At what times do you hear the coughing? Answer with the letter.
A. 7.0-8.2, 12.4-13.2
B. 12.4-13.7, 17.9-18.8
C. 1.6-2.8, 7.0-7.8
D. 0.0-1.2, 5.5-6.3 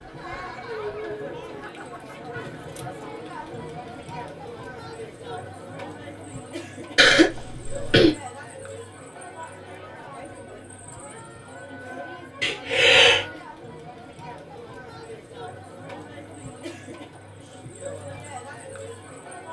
A.